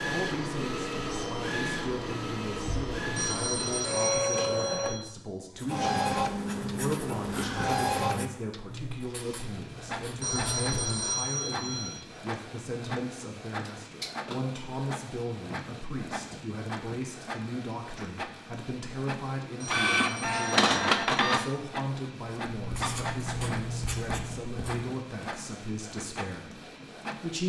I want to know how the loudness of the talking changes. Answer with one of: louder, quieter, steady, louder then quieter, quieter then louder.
steady.